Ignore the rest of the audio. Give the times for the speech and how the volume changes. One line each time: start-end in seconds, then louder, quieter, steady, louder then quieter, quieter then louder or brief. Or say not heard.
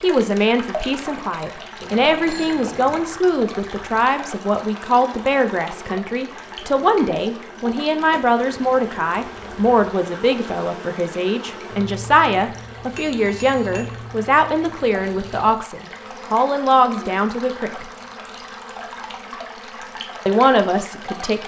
0.0-17.9 steady
20.2-21.4 brief.